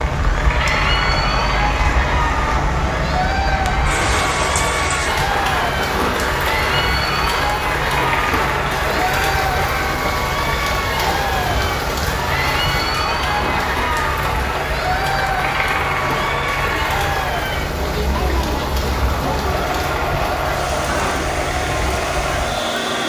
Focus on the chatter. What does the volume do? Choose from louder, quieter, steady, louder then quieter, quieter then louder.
steady.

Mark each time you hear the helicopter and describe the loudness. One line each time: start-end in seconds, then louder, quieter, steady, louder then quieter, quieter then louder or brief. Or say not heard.
0.0-23.0 steady.